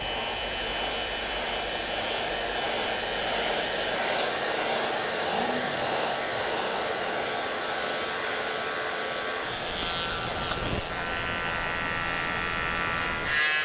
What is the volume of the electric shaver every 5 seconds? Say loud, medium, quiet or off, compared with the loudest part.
medium, medium, loud.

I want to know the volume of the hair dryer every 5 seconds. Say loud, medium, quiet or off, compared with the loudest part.
loud, loud, medium.